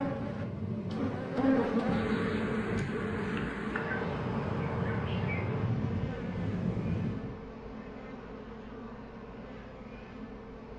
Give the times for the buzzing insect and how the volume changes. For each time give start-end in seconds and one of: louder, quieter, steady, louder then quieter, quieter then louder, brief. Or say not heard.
0.0-10.7 quieter.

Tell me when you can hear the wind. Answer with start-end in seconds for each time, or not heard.
0.0-7.4.